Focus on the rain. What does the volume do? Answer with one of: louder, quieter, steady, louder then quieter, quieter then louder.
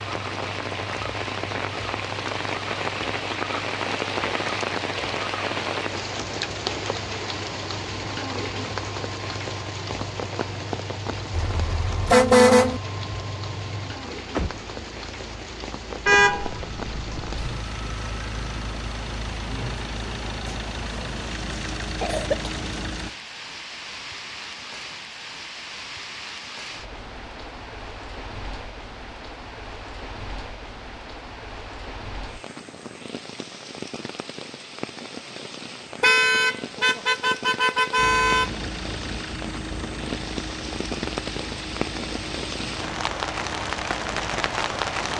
quieter then louder.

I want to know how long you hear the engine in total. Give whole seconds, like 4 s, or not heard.
30 s.